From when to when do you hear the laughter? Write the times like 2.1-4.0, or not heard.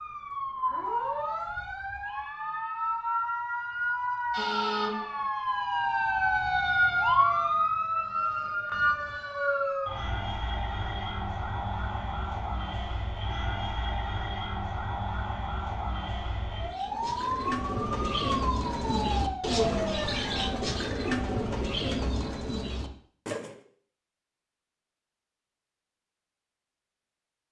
not heard.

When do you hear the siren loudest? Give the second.
7 s.